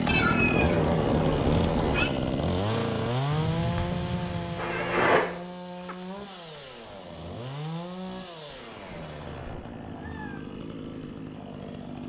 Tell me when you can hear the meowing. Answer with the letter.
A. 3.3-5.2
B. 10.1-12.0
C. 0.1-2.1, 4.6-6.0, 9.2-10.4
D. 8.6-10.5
C.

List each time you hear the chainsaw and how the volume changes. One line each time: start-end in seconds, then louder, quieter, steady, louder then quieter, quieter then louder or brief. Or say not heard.
0.0-12.0 quieter.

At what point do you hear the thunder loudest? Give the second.
5 s.